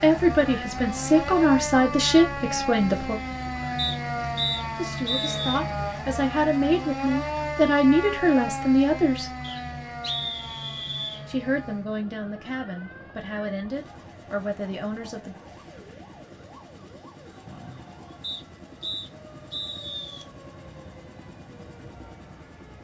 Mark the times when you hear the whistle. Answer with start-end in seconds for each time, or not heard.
3.8-5.6, 9.4-11.2, 18.2-20.2.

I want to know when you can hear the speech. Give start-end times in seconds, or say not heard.
0.0-3.2, 4.8-9.3, 11.2-15.3.